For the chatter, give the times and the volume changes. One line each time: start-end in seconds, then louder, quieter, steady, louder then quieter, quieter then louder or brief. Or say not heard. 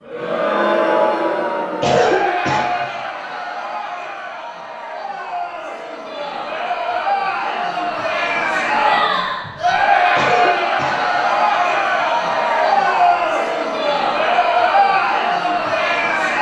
0.0-16.3 quieter then louder.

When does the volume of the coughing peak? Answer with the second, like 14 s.
2 s.